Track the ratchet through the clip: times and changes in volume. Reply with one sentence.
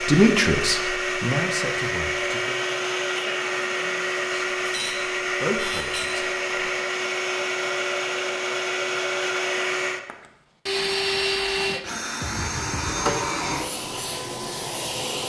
The ratchet can't be heard in this clip.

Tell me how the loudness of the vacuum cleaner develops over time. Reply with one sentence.
The loudness of the vacuum cleaner stays about the same.